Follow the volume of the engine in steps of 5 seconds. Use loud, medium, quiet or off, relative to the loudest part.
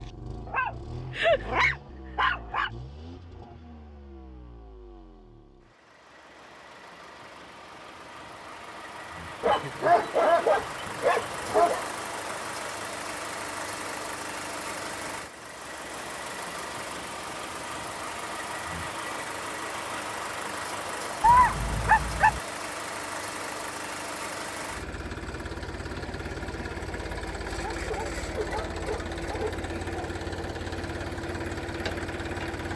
medium, medium, loud, loud, loud, loud, loud.